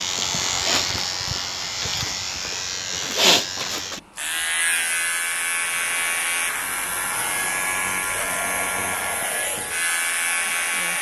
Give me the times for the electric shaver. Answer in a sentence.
You can hear the electric shaver from 0.0 to 10.9 s.